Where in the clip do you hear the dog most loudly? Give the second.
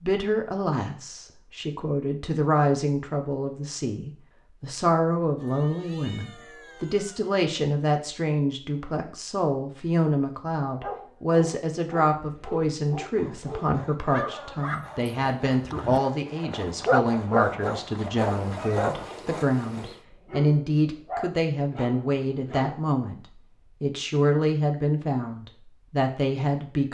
17 s.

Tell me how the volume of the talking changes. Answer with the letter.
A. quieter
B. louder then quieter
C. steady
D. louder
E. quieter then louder
C.